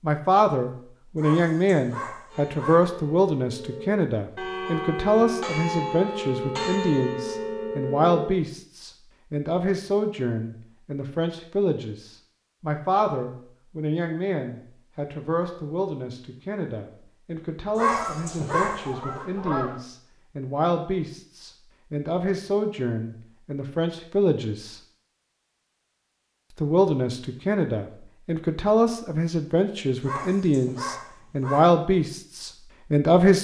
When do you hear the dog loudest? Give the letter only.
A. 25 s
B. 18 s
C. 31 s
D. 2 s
B.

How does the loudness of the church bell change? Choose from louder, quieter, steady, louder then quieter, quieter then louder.
louder.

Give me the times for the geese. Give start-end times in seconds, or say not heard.
17.9-19.8.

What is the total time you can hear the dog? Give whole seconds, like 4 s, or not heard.
5 s.